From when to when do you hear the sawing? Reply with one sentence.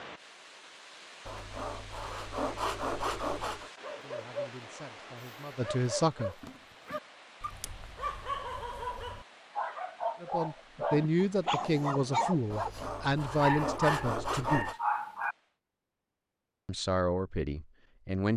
You can hear the sawing from 1.2 to 3.7 s and from 12.5 to 14.8 s.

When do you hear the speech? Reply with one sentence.
The speech can be heard from 4.0 to 6.3 s, from 10.2 to 14.7 s and from 16.6 to 18.3 s.